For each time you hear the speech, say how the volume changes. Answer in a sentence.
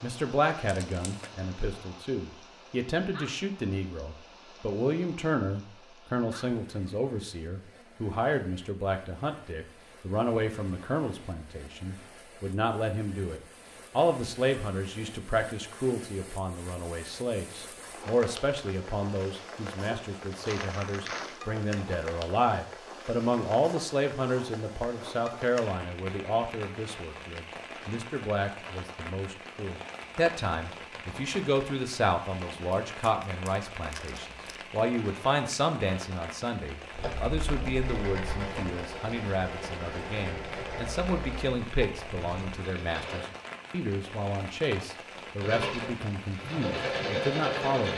You can hear the speech from 0.0 to 47.9 s, at a steady volume.